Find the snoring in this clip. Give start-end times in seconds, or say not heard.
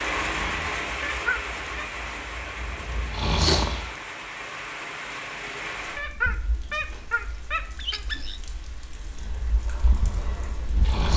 0.0-4.0, 9.1-11.1.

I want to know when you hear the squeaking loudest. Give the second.
6 s.